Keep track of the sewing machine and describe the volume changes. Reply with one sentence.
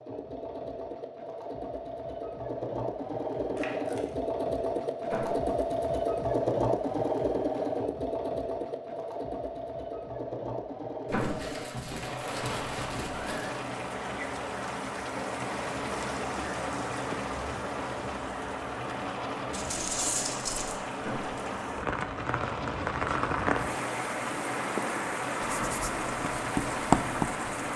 The volume of the sewing machine goes down.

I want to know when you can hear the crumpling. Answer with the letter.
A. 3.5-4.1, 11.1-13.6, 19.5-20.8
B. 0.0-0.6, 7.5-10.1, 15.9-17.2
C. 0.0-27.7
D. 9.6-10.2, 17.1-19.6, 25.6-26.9
A.